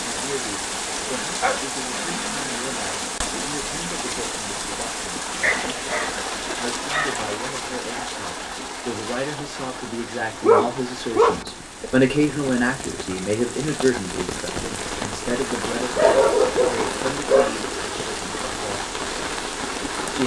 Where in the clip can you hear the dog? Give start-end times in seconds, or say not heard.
1.0-3.1, 5.4-7.2, 10.4-11.9, 15.9-17.6.